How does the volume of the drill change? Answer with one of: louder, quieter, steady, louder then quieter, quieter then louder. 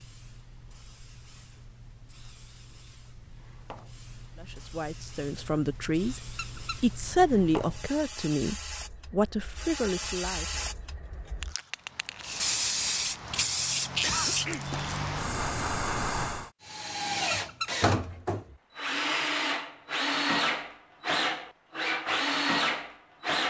steady.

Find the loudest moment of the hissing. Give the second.
14 s.